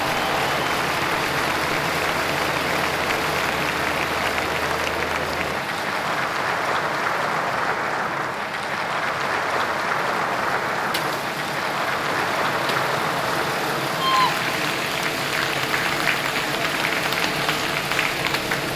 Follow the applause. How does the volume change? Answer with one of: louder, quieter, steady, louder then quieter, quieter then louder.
steady.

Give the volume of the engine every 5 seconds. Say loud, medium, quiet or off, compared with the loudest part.
loud, medium, loud, loud.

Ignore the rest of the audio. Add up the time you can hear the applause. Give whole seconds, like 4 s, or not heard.
19 s.